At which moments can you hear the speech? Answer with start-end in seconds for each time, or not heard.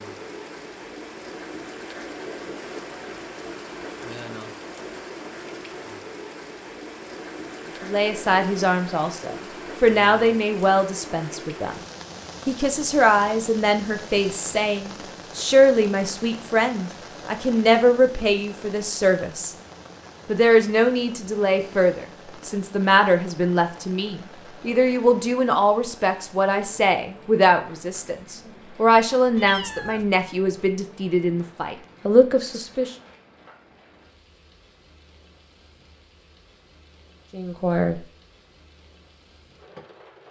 7.8-11.8, 12.4-19.6, 20.2-33.0, 37.3-38.0.